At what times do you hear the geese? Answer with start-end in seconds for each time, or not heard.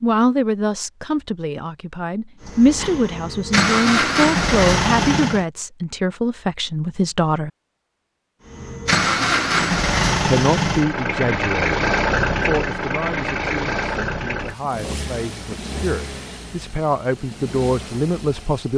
not heard.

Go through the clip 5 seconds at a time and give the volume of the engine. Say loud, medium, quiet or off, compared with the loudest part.
loud, loud, loud, quiet.